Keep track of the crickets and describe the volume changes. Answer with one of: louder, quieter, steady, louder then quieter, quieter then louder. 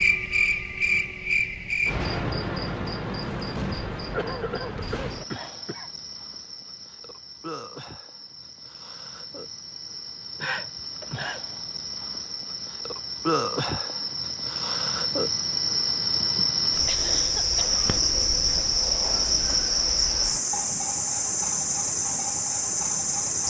quieter then louder.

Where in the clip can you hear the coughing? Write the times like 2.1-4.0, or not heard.
4.1-5.9, 10.4-11.4, 16.9-18.0.